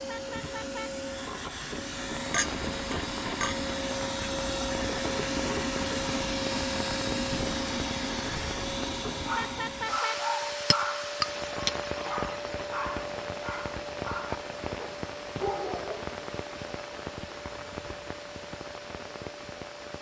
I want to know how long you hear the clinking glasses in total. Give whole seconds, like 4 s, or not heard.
2 s.